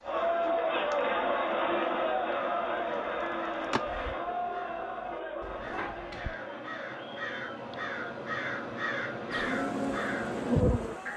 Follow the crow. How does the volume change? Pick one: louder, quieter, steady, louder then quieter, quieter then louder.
louder.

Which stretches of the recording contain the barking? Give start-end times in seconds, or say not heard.
4.2-5.7.